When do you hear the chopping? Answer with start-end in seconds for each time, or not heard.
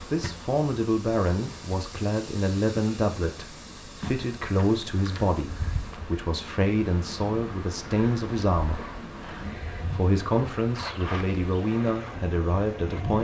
not heard.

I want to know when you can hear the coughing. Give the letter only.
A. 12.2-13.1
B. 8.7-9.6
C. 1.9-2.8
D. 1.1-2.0
B.